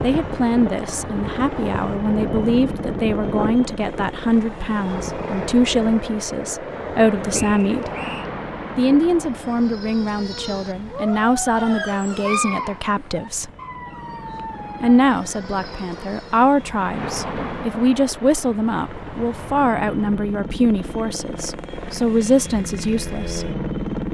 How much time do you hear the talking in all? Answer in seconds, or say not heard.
21 s.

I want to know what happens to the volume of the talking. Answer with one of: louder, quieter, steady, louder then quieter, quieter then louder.
steady.